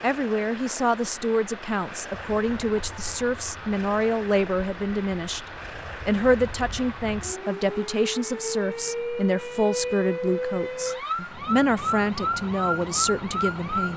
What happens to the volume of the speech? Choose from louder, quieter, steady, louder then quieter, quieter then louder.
steady.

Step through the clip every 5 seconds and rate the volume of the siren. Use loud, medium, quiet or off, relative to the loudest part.
quiet, medium, loud.